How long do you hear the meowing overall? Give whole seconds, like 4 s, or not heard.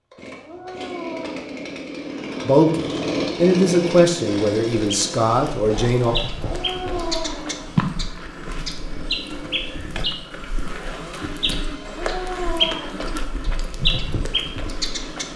4 s.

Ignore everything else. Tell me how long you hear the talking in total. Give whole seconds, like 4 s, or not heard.
4 s.